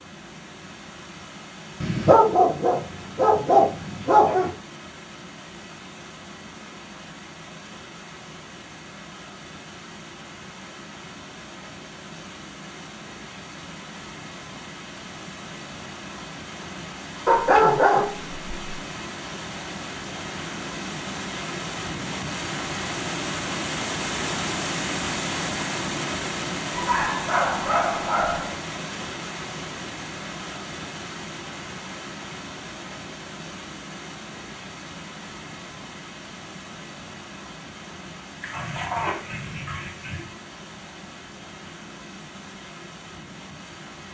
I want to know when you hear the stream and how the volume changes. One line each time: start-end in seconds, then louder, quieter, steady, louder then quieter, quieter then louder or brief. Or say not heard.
0.0-44.0 louder then quieter.